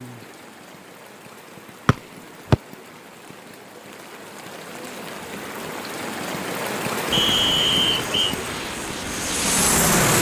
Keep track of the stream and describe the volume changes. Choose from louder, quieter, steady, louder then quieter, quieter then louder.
louder.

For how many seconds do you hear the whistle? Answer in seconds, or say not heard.
2 s.